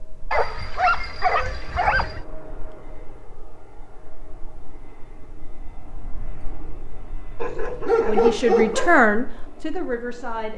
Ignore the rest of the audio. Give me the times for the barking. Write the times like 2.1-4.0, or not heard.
0.3-2.2, 7.4-9.0.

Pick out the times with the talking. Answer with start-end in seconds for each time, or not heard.
8.0-10.5.